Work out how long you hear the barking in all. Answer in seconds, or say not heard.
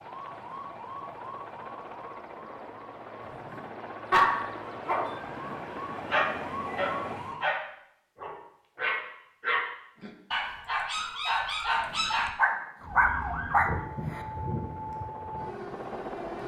11 s.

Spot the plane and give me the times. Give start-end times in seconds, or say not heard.
0.0-7.2, 14.1-16.4.